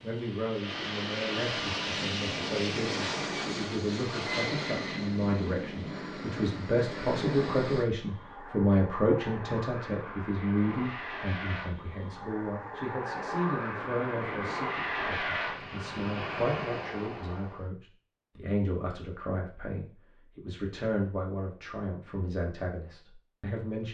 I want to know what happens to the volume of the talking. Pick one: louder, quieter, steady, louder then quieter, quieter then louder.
louder then quieter.